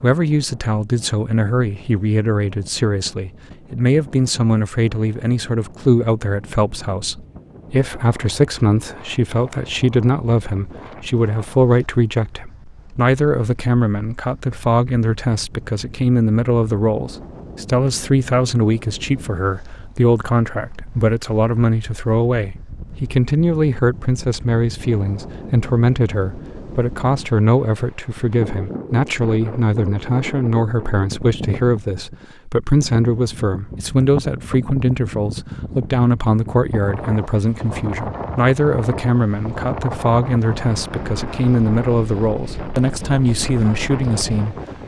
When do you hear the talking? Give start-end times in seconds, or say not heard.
0.0-44.5.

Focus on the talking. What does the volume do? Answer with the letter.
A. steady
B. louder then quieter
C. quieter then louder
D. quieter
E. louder
A.